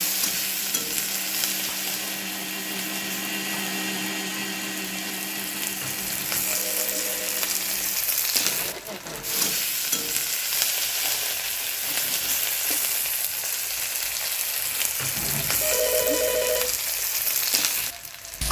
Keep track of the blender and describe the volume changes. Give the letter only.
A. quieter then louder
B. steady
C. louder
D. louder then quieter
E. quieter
D.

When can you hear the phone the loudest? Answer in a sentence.
The volume of the phone peaks at 16 seconds.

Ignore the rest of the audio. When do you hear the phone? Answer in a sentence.
You can hear the phone from 6.0 to 7.4 s and from 15.2 to 16.8 s.